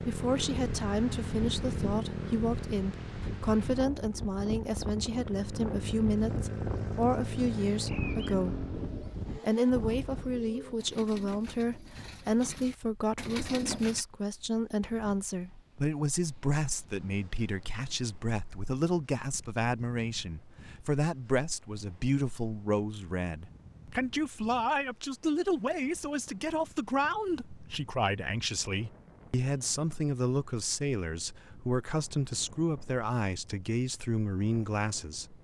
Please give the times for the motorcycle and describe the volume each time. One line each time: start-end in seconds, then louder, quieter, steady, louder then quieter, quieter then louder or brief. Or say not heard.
0.0-9.0 quieter then louder.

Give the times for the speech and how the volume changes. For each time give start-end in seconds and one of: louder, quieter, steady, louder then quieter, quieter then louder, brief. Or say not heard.
0.0-8.7 steady
9.4-35.4 steady.